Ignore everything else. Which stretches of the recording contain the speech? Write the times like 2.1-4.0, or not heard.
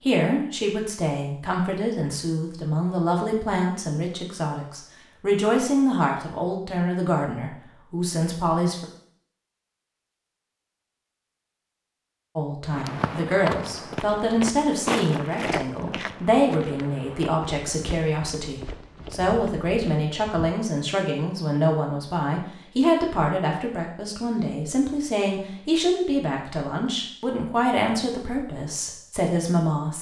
0.0-8.8, 12.3-29.9.